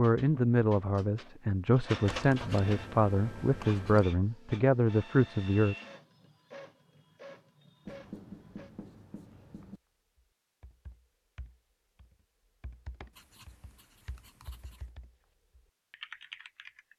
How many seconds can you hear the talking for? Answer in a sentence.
The talking can be heard for 6 seconds in total.